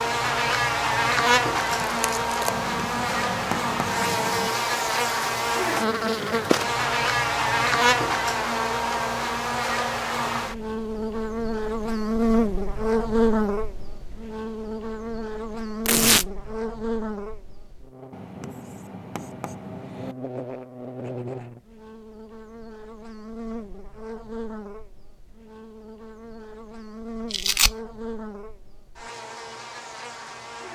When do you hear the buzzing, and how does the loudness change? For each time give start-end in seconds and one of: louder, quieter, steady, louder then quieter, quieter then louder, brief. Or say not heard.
0.0-30.7 quieter.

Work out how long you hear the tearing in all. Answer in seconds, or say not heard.
2 s.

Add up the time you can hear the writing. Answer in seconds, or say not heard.
4 s.